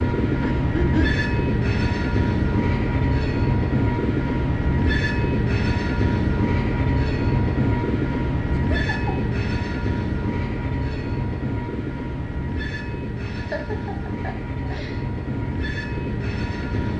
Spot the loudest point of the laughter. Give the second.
1 s.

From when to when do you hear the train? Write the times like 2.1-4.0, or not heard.
0.0-16.9.